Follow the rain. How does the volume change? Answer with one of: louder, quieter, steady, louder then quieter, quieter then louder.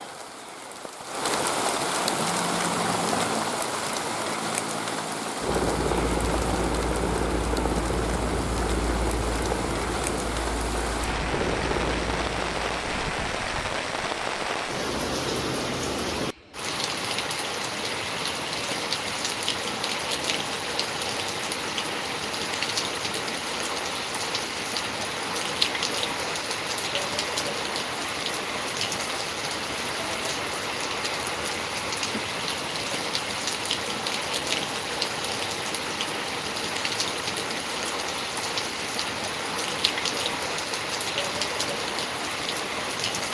steady.